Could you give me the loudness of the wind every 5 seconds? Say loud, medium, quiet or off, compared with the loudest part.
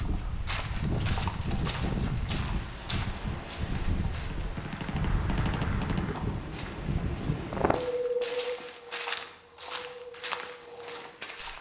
loud, loud, quiet.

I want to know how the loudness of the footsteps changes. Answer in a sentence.
The loudness of the footsteps goes down, then up.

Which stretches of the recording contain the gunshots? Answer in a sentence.
The gunshots can be heard from 4.3 to 6.2 s.